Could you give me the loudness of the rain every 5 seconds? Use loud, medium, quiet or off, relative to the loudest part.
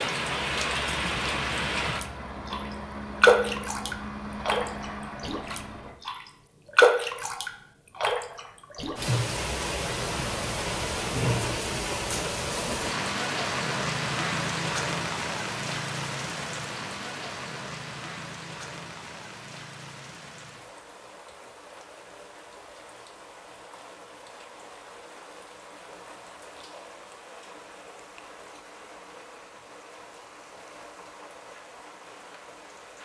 loud, loud, loud, medium, quiet, quiet, quiet.